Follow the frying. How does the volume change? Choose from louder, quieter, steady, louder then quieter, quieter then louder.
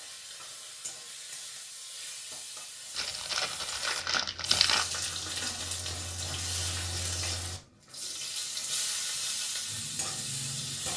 louder.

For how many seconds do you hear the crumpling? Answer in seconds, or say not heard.
2 s.